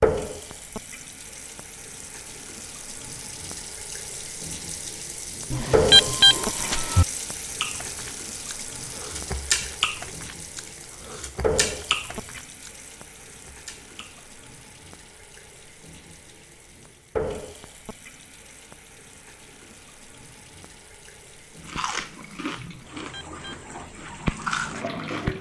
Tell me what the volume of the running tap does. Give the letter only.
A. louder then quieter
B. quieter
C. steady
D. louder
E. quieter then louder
A.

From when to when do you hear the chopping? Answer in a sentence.
The chopping can't be heard in this clip.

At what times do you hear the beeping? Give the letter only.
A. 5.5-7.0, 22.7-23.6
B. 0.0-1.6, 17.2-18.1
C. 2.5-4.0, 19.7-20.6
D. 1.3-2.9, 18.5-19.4
A.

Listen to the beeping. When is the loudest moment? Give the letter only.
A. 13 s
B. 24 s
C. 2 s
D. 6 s
D.